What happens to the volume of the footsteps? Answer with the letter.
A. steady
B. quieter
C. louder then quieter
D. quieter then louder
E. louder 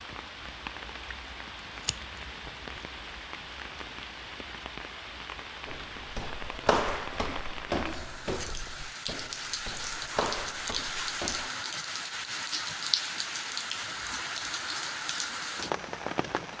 D.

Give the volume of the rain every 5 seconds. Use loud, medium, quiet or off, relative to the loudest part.
medium, medium, loud, loud.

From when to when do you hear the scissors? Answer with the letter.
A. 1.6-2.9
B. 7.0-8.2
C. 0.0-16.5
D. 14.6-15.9
A.